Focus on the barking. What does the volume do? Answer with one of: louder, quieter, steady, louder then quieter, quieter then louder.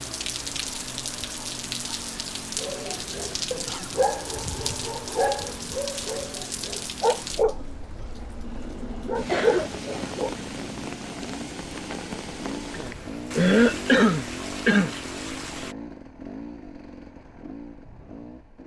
steady.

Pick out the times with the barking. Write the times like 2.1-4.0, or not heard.
2.5-10.4.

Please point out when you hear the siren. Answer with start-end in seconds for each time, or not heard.
not heard.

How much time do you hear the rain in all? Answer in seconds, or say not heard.
16 s.